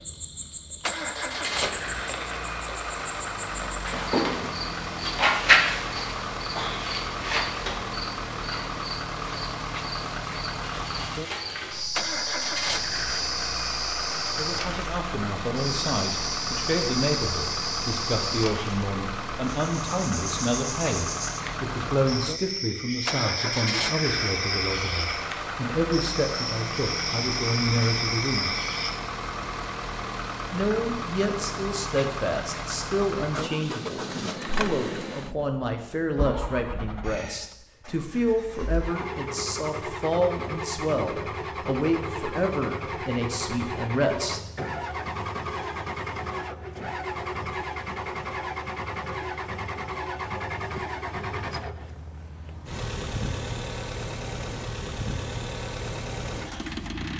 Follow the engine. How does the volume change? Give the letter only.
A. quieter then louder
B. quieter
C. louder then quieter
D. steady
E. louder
D.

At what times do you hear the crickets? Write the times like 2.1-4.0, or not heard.
0.0-28.9.